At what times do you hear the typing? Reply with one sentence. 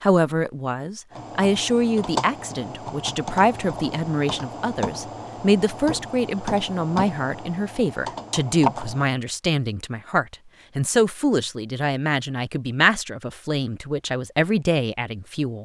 You can hear the typing from 1.1 to 9.1 s.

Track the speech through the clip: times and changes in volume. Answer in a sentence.
The speech can be heard from 0.0 to 15.6 s, at a steady volume.